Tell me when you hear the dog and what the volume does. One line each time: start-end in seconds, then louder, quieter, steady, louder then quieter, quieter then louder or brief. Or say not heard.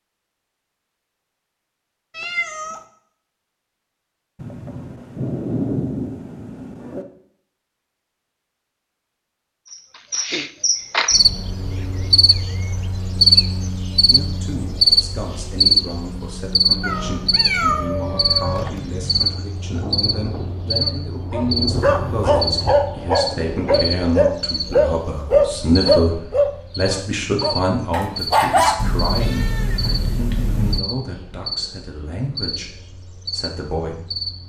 20.8-28.8 louder then quieter.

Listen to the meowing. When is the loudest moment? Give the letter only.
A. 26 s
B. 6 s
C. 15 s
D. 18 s
D.